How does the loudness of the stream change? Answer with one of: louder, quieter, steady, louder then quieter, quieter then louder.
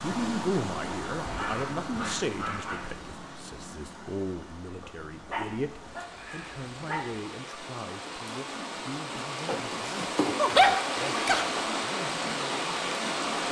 quieter then louder.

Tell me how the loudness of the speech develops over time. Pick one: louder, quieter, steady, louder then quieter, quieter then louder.
quieter.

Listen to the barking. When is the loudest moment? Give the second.
11 s.